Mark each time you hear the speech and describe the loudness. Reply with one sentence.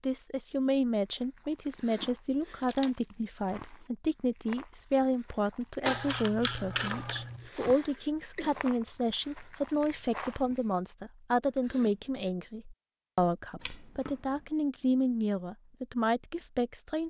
The speech can be heard from 0.0 to 17.0 s, at a steady volume.